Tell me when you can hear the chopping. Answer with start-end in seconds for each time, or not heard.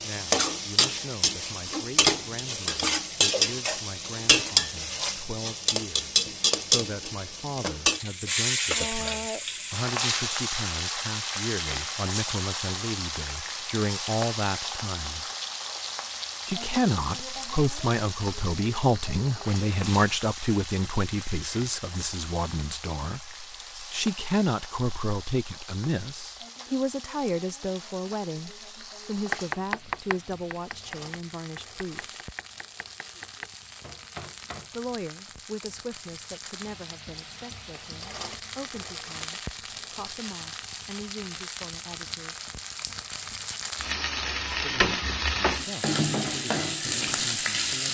29.3-34.7.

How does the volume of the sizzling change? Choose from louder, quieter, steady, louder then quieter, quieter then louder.
quieter then louder.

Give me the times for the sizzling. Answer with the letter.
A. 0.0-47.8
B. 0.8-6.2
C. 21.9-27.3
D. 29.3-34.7
A.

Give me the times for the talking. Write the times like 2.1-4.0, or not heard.
0.0-15.2, 16.4-32.2, 34.7-42.5, 44.5-47.8.